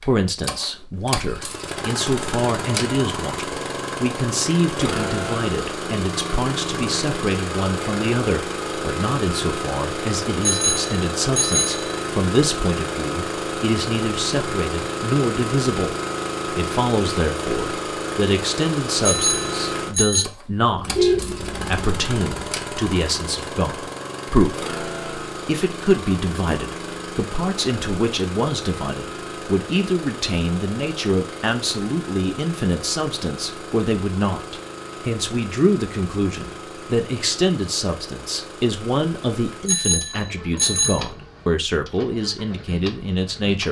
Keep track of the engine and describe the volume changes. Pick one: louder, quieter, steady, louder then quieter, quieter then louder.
quieter.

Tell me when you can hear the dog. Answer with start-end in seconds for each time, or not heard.
not heard.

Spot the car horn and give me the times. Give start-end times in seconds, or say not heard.
20.7-22.1.